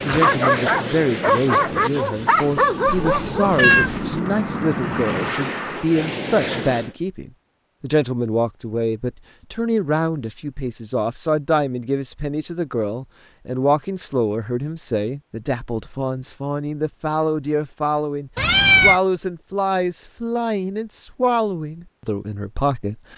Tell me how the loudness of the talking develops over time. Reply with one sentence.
The loudness of the talking stays about the same.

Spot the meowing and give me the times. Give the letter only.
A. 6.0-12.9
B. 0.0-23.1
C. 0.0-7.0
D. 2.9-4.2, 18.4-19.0
D.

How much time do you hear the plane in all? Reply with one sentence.
The plane can be heard for 7 seconds in total.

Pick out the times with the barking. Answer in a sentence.
You can hear the barking from 0.0 to 3.6 s.